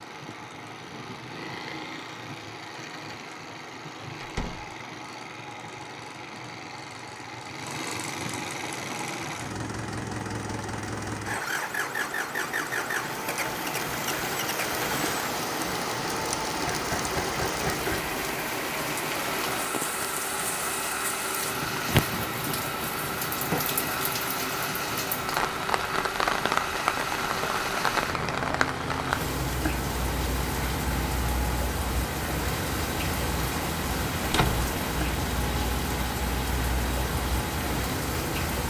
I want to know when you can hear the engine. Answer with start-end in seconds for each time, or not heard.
0.0-38.6.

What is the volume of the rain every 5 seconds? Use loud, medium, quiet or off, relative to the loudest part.
quiet, quiet, medium, loud, loud, loud, loud, loud.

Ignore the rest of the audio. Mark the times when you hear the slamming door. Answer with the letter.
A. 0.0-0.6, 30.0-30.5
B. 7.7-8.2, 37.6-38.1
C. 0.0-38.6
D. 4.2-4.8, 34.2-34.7
D.